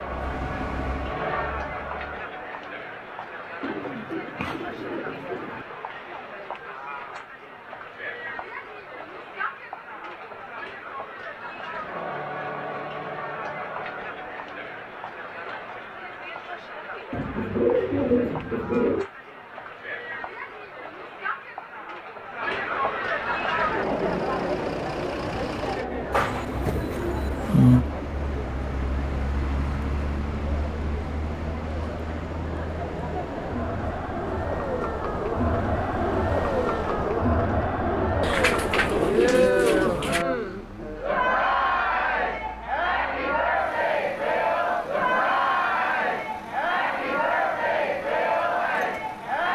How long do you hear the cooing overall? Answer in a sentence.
The cooing can be heard for 8 seconds in total.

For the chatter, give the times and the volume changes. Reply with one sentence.
The chatter can be heard from 0.0 to 49.5 s, getting louder.